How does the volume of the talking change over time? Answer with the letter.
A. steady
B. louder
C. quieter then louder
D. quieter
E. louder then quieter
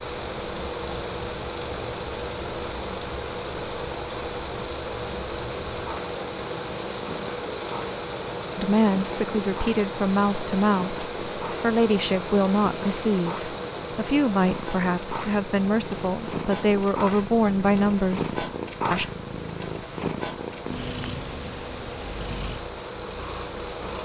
A.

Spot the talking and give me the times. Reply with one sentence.
The talking can be heard from 8.6 to 19.1 s.